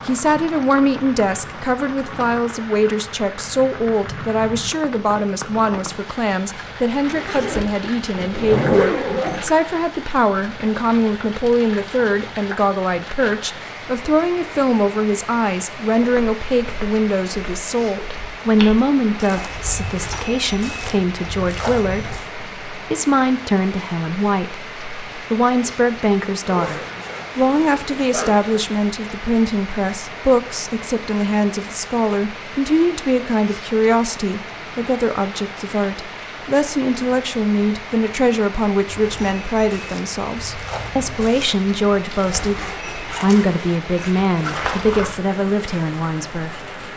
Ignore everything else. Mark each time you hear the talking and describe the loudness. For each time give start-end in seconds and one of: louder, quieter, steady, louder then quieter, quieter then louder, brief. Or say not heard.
0.1-46.6 steady.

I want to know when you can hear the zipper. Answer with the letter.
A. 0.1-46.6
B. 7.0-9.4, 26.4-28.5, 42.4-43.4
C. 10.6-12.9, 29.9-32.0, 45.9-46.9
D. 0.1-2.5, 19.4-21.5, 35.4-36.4
B.